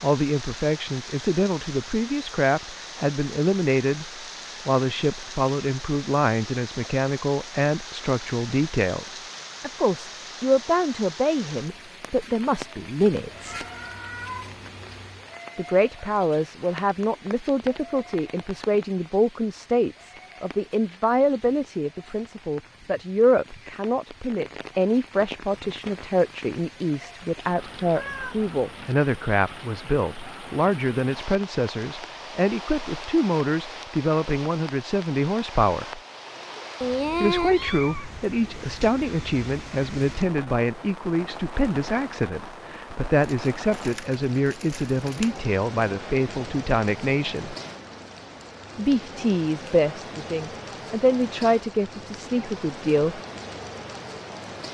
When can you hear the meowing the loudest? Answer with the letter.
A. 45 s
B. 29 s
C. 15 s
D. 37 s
D.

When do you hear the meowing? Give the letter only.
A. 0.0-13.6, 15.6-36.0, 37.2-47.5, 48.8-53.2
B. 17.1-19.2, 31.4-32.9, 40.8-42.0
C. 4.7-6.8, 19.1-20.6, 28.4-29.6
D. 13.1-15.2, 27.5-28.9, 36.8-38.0
D.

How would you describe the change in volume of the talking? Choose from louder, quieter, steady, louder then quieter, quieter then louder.
steady.